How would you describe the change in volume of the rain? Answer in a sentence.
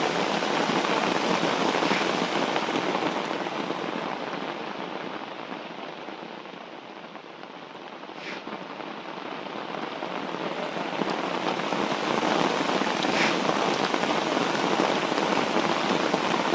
The volume of the rain goes down, then up.